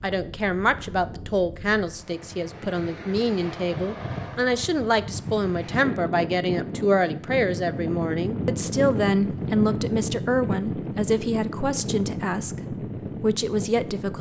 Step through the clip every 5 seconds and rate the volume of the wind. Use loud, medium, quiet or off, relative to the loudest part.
medium, loud, loud.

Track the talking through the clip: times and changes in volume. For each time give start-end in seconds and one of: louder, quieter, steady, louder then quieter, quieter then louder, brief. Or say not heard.
0.0-14.1 steady.